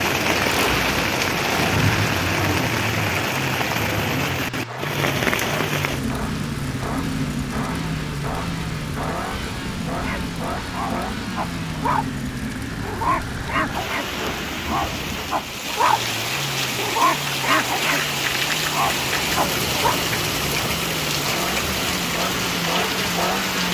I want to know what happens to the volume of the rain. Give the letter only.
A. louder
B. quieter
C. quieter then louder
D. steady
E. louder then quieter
C.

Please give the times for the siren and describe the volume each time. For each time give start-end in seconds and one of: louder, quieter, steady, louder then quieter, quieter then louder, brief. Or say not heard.
not heard.